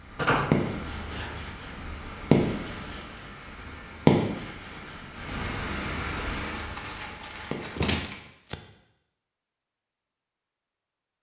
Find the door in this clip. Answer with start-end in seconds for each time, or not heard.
0.1-1.4, 7.8-8.6.